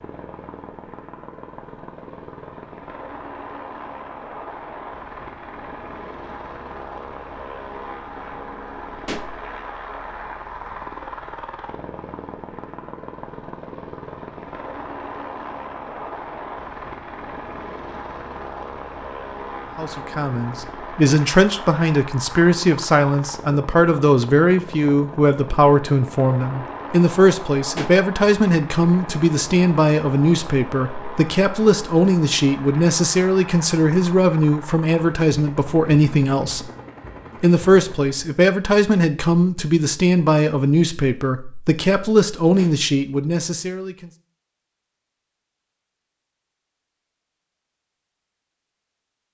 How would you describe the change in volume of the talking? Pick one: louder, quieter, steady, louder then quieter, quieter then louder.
steady.